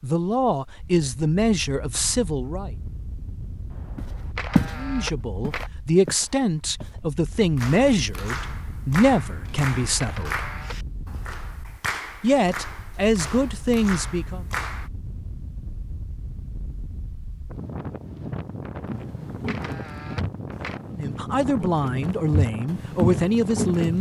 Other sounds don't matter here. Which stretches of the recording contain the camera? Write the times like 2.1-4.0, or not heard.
3.7-5.7, 9.3-10.8, 18.9-20.8.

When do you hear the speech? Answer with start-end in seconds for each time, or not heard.
0.0-2.7, 4.8-10.5, 12.2-14.4, 20.9-23.9.